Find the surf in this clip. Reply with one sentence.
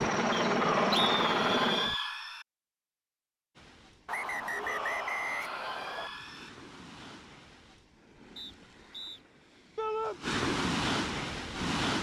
You can hear the surf from 3.5 to 11.9 s.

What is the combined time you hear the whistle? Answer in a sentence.
You can hear the whistle for 5 seconds altogether.